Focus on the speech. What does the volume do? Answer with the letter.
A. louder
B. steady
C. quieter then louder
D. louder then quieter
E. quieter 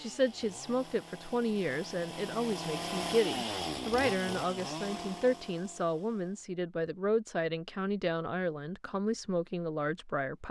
B.